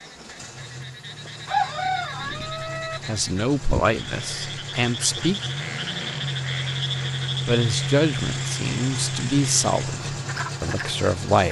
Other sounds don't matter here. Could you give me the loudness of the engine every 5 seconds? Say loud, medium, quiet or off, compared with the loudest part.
medium, loud, loud.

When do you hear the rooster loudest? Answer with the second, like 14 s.
2 s.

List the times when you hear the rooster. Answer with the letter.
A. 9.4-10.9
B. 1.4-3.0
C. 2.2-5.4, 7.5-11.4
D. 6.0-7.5
B.